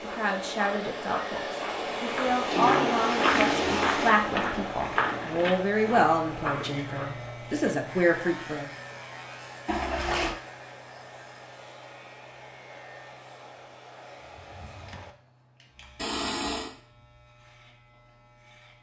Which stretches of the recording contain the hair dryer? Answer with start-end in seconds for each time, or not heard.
0.0-15.2.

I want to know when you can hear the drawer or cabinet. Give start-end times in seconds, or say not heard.
14.3-15.2.